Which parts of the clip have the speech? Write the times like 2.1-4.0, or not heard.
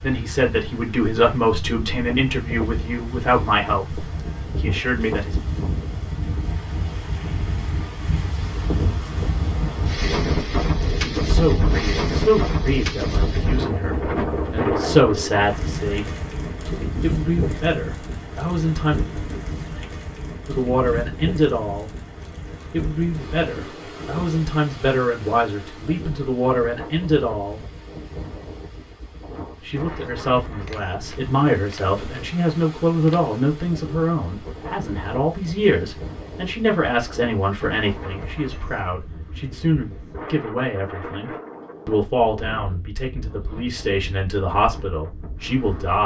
0.0-5.4, 11.0-16.1, 17.0-19.0, 20.4-21.9, 22.7-27.6, 29.6-46.0.